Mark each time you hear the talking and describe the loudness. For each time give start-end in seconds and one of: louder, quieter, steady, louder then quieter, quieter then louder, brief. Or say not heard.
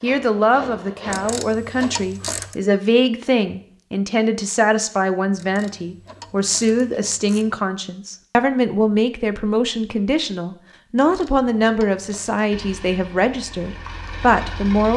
0.0-14.9 steady.